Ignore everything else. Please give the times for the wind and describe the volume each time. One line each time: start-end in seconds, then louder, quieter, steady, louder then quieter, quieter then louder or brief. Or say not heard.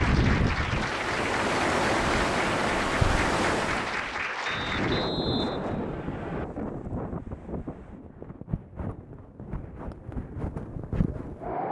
0.0-11.6 quieter.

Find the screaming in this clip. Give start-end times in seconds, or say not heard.
not heard.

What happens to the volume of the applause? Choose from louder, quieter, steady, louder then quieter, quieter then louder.
steady.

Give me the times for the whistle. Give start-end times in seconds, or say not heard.
4.5-6.5.